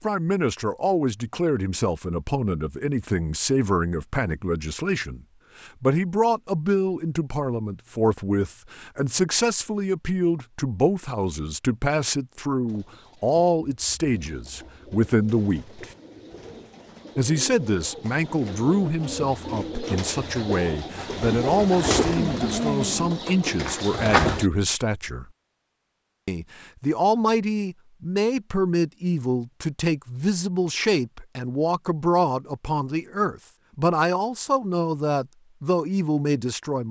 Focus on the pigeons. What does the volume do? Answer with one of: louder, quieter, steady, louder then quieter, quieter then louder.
louder.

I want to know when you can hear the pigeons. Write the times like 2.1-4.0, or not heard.
12.7-24.5.